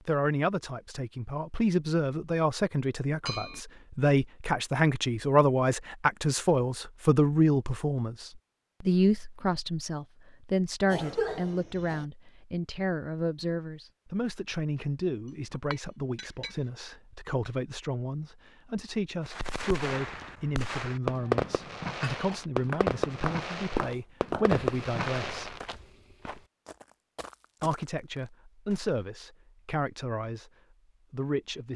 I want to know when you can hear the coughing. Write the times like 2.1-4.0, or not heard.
10.9-12.1.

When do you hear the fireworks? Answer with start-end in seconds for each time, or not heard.
19.2-25.9.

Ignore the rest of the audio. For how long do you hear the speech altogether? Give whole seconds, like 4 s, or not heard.
29 s.